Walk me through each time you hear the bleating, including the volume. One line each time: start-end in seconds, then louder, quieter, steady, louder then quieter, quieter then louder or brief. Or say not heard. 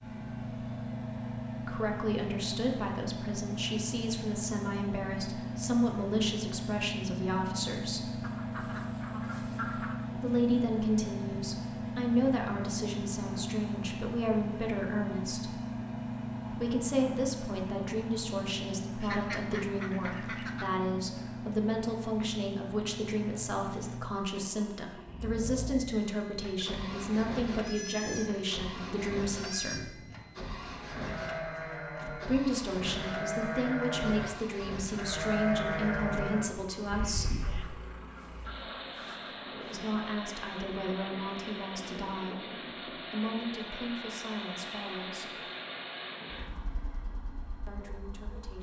26.4-37.6 louder.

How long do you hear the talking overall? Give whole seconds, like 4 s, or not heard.
37 s.